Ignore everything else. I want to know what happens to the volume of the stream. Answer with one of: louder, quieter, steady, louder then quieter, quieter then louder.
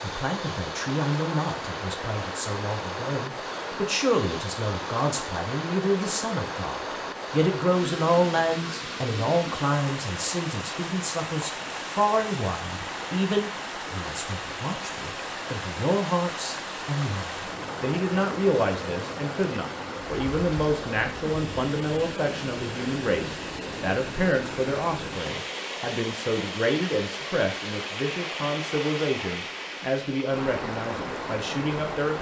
steady.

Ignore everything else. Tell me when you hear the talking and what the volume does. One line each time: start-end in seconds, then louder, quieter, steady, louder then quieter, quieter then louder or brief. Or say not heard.
0.0-32.1 steady.